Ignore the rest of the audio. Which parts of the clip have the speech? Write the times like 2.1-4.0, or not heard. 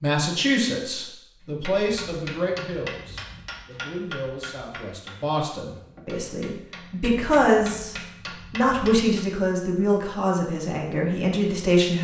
0.0-11.9.